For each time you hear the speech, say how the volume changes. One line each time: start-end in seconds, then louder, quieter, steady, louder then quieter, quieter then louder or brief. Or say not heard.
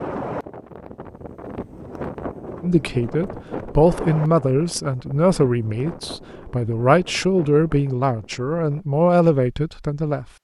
2.6-10.2 steady.